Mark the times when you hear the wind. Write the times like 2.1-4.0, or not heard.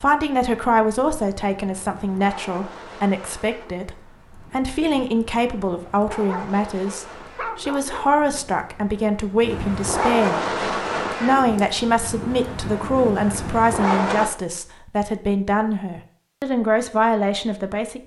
0.0-14.3.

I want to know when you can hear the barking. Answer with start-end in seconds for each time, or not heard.
6.1-8.1.